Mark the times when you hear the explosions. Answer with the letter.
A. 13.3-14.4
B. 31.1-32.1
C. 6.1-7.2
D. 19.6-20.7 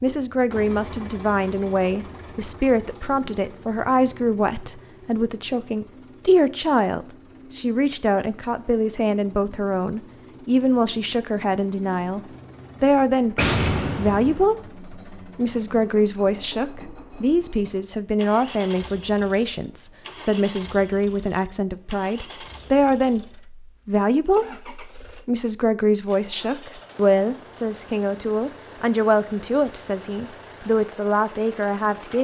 A.